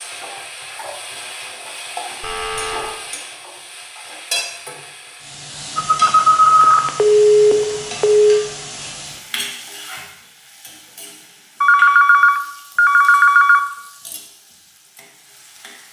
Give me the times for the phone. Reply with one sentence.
The phone can be heard from 2.2 to 3.0 s, from 5.8 to 8.4 s and from 11.6 to 13.6 s.